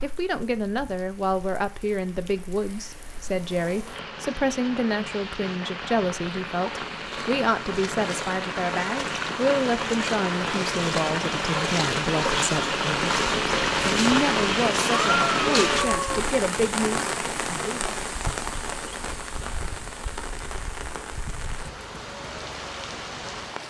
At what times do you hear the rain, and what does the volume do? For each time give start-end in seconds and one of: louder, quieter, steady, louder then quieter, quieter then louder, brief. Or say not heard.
0.0-23.6 louder then quieter.